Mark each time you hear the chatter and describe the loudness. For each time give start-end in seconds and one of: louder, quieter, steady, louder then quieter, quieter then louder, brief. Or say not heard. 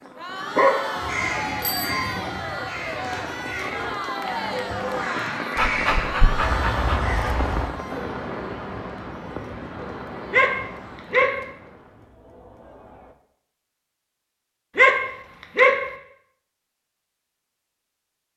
0.0-13.2 quieter.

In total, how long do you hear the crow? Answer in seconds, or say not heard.
7 s.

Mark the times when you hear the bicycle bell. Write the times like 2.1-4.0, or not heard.
1.6-2.2.